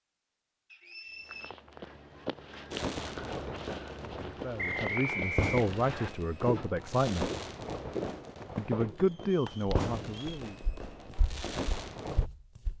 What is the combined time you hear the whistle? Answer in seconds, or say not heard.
4 s.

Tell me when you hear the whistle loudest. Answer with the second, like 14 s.
5 s.